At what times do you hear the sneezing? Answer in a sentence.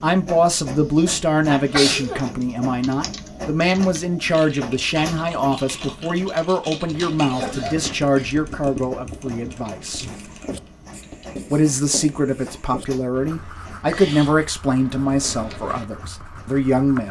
The sneezing can be heard from 1.4 to 2.2 s, from 7.3 to 8.3 s and from 13.2 to 14.4 s.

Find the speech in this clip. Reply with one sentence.
The speech can be heard from 0.0 to 10.1 s and from 11.5 to 17.0 s.